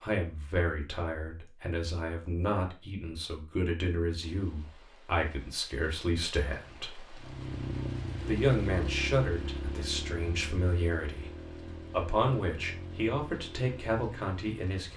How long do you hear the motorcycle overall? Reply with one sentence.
You can hear the motorcycle for 8 seconds altogether.